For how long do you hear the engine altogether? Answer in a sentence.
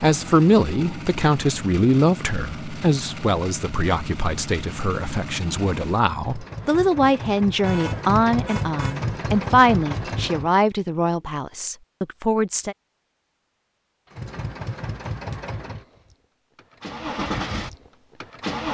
You can hear the engine for 15 seconds altogether.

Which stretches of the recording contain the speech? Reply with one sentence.
You can hear the speech from 0.0 to 12.8 s.